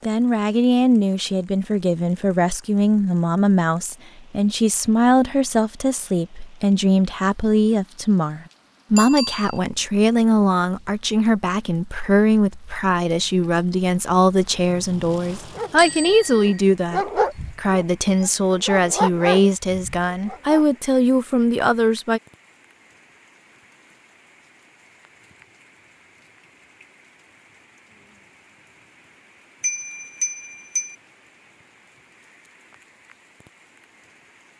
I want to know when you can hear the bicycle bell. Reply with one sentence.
The bicycle bell can be heard from 8.9 to 9.6 s, from 15.8 to 16.6 s and from 29.6 to 30.9 s.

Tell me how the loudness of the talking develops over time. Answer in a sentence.
The volume of the talking stays about the same.